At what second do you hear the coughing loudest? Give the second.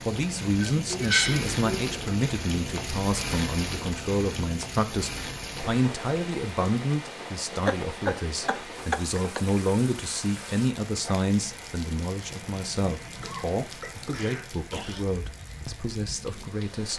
1 s.